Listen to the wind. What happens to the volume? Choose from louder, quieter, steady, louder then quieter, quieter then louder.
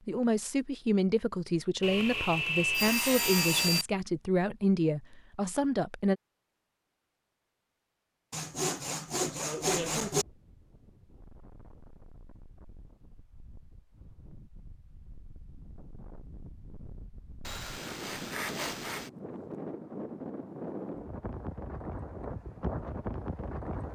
louder.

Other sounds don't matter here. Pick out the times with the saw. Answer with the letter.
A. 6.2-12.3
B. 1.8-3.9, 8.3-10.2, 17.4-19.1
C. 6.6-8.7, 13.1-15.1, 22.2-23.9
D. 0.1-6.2
B.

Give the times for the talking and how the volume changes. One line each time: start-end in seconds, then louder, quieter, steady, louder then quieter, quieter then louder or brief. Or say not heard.
0.1-6.2 steady.